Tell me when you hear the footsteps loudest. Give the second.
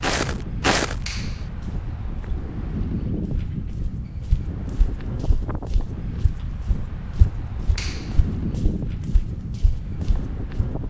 1 s.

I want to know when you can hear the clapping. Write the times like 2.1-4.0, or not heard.
1.1-1.5, 7.8-8.2.